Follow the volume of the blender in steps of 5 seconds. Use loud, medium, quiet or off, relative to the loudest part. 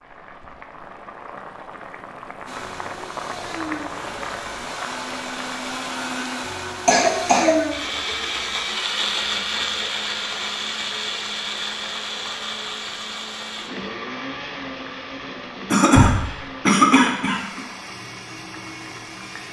medium, loud, loud, medium.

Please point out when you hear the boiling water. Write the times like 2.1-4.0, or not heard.
0.0-19.4.